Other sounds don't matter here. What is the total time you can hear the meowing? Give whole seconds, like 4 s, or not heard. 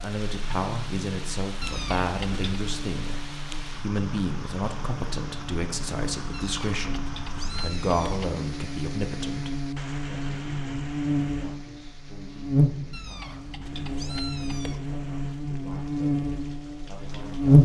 5 s.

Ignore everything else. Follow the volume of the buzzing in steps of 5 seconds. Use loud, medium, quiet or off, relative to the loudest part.
quiet, quiet, medium, loud.